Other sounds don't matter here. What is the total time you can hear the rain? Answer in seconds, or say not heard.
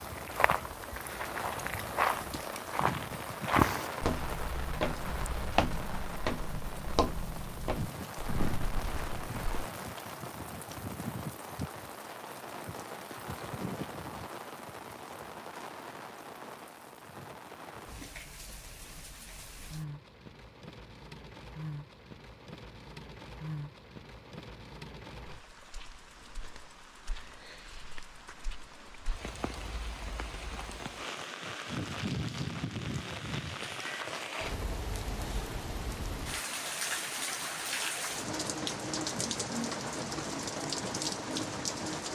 42 s.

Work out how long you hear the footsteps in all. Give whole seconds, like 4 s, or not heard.
10 s.